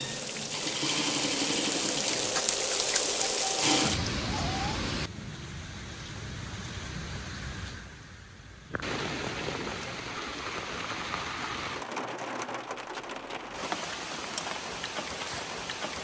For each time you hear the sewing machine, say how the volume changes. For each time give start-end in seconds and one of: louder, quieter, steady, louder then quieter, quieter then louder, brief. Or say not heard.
0.0-4.7 quieter then louder.